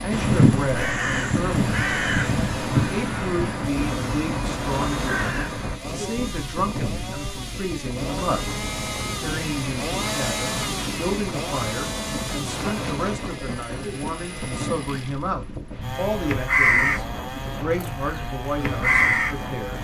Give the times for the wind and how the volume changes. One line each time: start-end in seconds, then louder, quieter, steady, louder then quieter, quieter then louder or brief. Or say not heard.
0.0-19.8 steady.